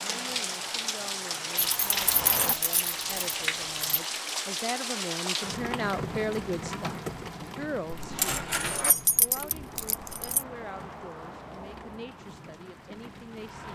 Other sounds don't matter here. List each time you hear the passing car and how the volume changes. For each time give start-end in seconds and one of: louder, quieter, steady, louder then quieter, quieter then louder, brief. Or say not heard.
0.0-2.5 brief
9.4-13.7 quieter.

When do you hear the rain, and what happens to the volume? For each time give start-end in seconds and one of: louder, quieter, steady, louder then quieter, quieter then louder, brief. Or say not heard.
0.0-13.7 quieter.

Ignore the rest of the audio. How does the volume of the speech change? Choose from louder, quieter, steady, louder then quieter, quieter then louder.
louder then quieter.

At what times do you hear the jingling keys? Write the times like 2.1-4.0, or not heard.
1.6-4.0, 7.9-10.4.